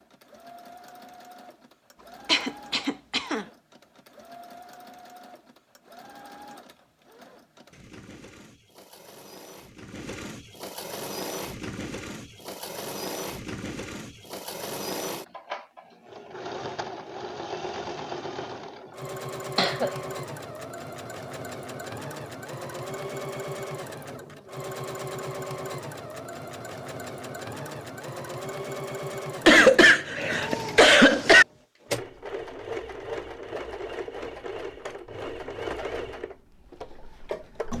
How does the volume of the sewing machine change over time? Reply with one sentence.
The loudness of the sewing machine goes up.